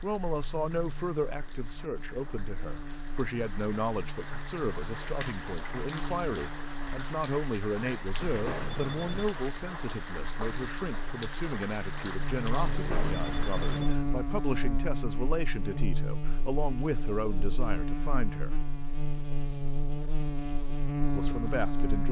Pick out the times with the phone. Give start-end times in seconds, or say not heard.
8.2-9.3, 12.6-13.9.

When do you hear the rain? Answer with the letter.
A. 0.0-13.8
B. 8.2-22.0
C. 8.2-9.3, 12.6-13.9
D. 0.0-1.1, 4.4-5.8
A.